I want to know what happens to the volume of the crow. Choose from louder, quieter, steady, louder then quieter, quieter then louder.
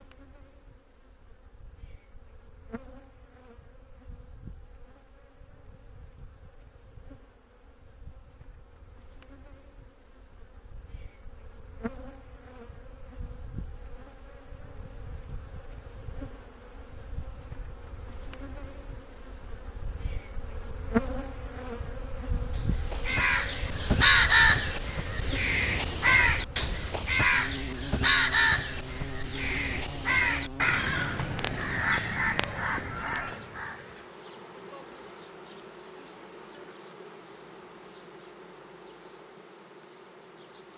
quieter.